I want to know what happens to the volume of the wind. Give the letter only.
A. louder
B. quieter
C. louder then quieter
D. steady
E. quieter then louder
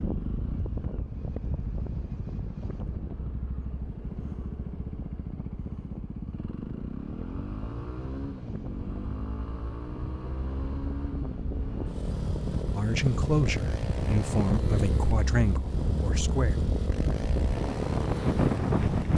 E.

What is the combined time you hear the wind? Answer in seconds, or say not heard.
19 s.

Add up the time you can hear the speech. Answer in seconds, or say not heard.
4 s.